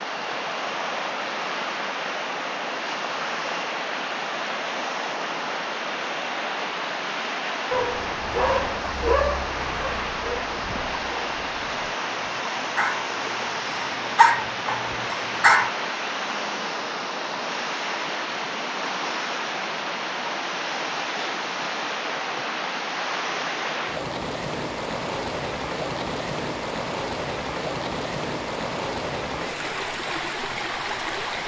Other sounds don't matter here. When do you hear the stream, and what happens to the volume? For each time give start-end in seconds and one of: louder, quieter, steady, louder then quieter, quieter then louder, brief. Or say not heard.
0.0-31.4 steady.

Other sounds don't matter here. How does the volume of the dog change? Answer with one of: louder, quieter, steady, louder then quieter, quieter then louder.
quieter then louder.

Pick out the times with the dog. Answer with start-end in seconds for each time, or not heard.
7.7-15.7.